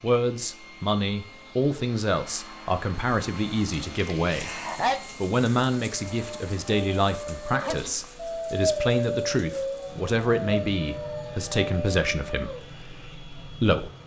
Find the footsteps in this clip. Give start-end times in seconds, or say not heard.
not heard.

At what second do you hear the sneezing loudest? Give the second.
5 s.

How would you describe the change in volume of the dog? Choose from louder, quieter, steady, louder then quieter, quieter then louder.
louder then quieter.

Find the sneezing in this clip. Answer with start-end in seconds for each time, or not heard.
4.0-5.0, 7.5-8.1.